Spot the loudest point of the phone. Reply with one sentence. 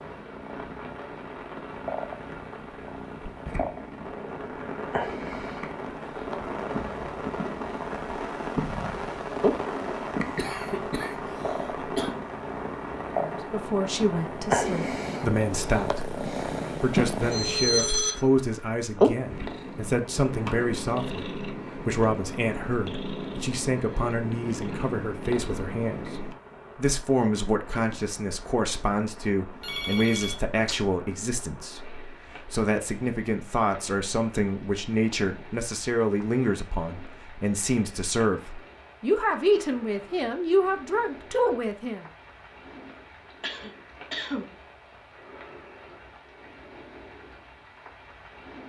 The volume of the phone peaks at 18 seconds.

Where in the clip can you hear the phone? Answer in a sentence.
The phone can be heard from 17.3 to 18.1 s and from 29.6 to 30.8 s.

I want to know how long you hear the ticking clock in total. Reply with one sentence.
The ticking clock can't be heard in this clip.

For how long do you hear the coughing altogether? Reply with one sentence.
You can hear the coughing for 3 seconds altogether.